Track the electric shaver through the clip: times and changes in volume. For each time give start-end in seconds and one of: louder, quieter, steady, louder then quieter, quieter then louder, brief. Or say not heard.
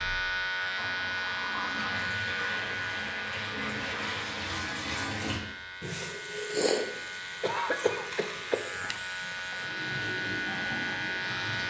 0.0-11.6 quieter then louder.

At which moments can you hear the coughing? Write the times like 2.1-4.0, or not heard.
7.4-8.6.